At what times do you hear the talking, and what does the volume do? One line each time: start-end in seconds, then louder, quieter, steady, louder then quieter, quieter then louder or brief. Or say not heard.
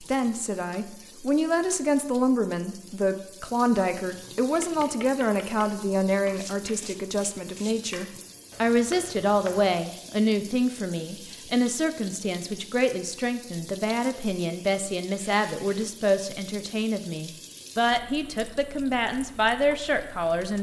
0.0-20.5 steady.